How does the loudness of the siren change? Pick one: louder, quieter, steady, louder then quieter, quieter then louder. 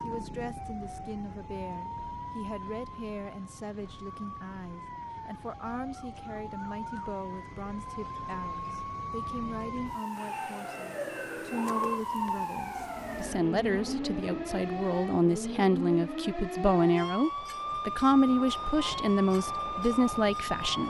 louder.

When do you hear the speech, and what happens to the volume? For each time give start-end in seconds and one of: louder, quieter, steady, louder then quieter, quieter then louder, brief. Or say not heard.
0.0-20.8 louder.